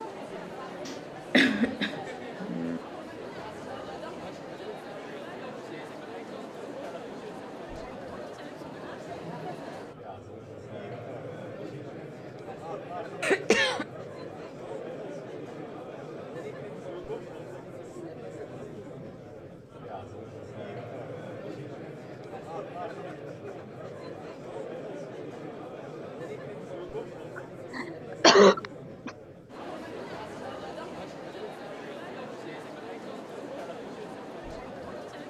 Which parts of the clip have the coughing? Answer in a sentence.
You can hear the coughing from 0.8 to 2.8 s, from 13.2 to 13.8 s and from 27.4 to 29.1 s.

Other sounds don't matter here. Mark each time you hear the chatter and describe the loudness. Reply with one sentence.
The chatter can be heard from 0.0 to 35.2 s, at a steady volume.